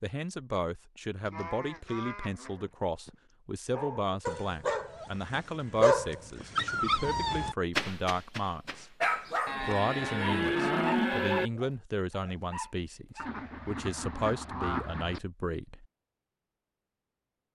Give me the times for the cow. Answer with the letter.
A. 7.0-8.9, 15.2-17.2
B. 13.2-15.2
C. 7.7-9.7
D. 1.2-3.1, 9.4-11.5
D.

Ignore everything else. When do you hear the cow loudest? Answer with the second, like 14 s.
11 s.